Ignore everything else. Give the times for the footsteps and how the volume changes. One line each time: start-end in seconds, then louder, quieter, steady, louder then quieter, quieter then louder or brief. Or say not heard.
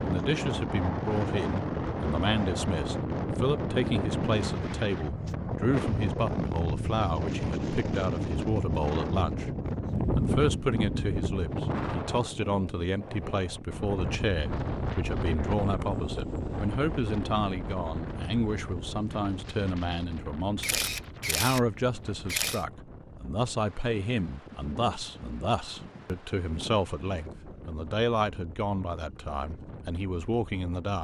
not heard.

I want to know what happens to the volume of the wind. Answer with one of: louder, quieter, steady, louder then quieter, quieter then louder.
quieter.